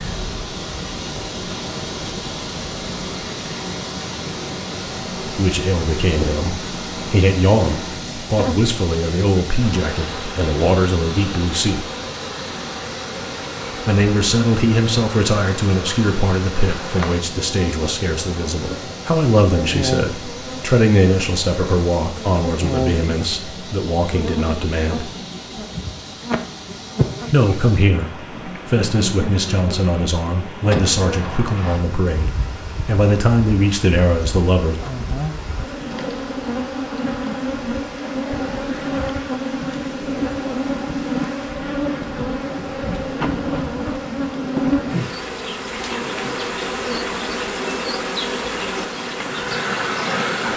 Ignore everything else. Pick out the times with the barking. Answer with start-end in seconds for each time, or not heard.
not heard.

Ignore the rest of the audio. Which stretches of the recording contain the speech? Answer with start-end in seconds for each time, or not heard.
5.2-11.8, 13.8-25.1, 27.3-34.8.